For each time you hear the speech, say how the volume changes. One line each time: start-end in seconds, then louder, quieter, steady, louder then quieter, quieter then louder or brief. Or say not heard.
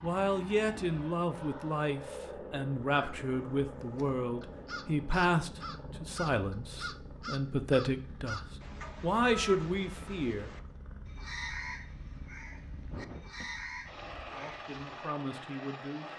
0.0-10.5 steady
14.3-16.1 brief.